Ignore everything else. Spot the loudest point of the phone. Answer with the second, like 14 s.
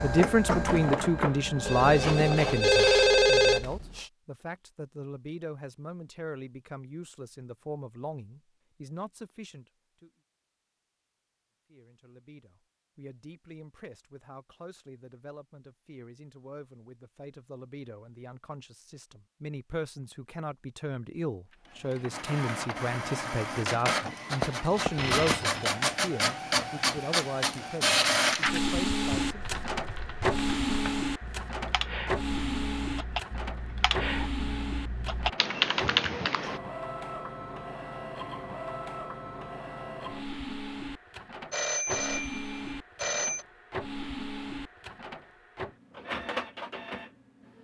3 s.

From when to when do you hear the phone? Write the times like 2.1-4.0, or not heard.
1.6-4.0, 24.4-25.6, 41.5-43.5.